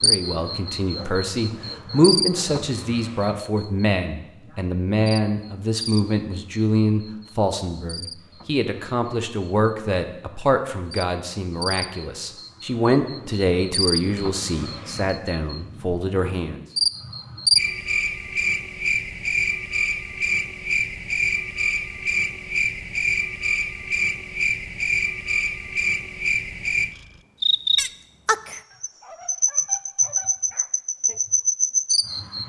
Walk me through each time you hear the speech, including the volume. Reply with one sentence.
You can hear the speech from 0.0 to 16.6 s, at a steady volume.